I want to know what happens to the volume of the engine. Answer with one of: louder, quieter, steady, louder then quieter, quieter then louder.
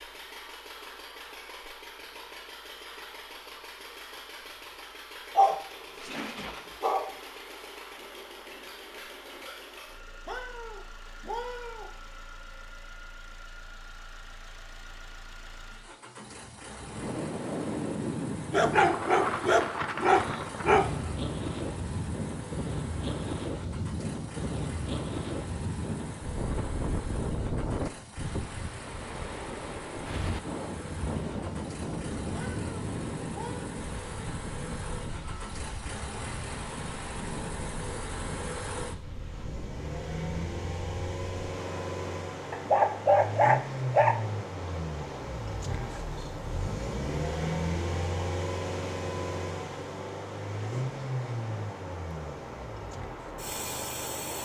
louder.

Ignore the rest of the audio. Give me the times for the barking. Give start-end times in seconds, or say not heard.
5.3-7.1, 18.5-21.1, 42.5-44.2.